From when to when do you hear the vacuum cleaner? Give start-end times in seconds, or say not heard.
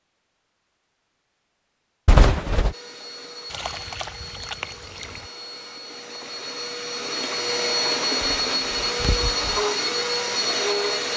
2.7-11.1.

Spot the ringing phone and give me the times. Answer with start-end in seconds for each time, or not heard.
2.0-2.8, 8.2-9.6.